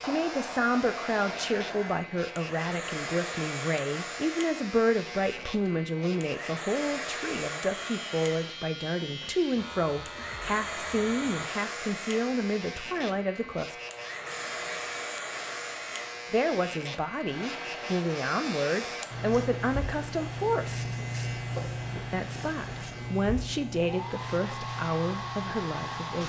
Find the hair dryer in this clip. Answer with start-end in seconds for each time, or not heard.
0.0-26.2.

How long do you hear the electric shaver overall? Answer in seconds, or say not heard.
26 s.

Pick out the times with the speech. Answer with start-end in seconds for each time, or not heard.
0.0-13.8, 16.3-20.9, 22.1-26.2.